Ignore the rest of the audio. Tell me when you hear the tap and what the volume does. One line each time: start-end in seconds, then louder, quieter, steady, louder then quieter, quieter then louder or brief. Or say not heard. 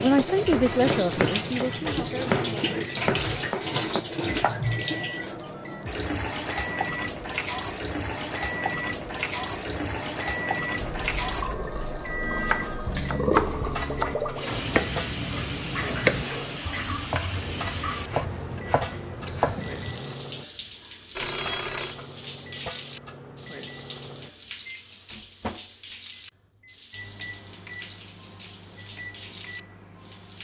0.0-30.3 quieter.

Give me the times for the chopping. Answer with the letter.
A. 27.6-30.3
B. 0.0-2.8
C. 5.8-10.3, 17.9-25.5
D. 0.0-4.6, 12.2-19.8
D.